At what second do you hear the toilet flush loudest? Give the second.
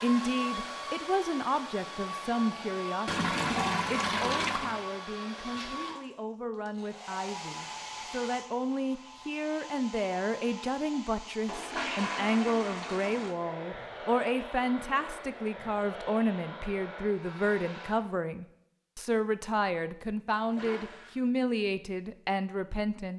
4 s.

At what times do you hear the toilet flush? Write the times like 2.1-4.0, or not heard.
3.0-4.8, 11.4-13.3, 20.3-21.1.